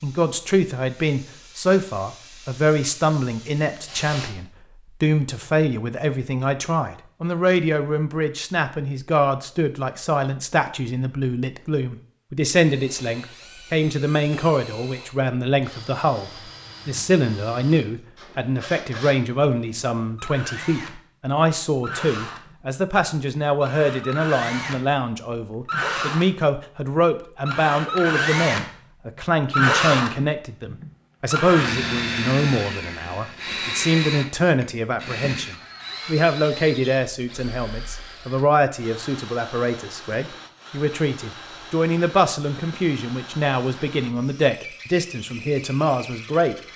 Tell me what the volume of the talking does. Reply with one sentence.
The loudness of the talking stays about the same.